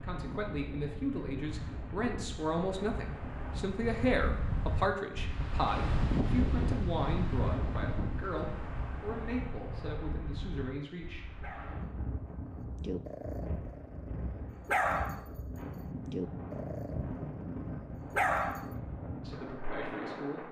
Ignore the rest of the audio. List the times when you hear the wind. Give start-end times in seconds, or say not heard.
0.0-20.4.